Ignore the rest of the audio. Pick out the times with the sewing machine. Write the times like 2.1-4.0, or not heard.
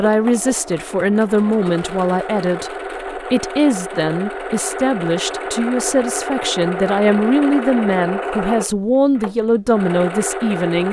0.0-10.8.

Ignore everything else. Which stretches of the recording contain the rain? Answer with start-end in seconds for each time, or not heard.
not heard.